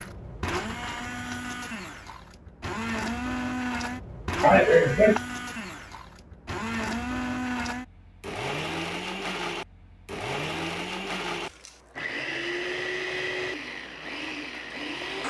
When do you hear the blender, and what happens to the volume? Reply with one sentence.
You can hear the blender from 0.0 to 15.2 s, at a steady volume.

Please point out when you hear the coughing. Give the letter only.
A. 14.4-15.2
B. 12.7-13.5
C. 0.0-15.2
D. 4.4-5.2
D.